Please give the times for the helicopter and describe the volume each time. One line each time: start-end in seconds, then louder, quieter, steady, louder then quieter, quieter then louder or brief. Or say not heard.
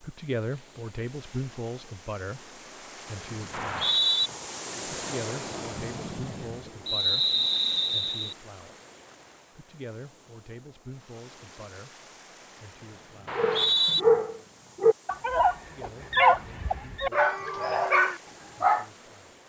not heard.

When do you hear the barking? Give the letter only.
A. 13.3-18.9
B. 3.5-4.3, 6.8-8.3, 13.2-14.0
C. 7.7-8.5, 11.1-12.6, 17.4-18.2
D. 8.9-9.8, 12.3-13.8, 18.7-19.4
A.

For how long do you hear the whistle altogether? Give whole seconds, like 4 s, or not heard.
3 s.